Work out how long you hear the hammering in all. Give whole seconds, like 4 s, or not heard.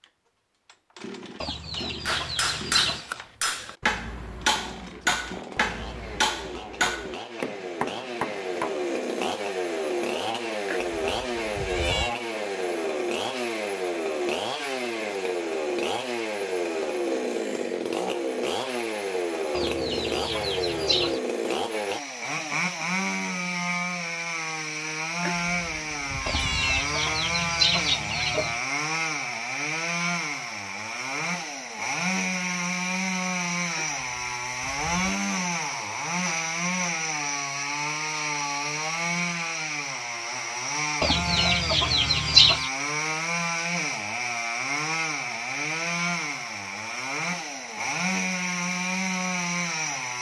7 s.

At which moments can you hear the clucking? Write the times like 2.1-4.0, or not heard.
1.4-3.0, 19.5-21.2, 26.2-28.6, 41.0-42.7.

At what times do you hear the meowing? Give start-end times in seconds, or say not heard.
10.7-12.2, 25.2-26.9, 33.8-35.2.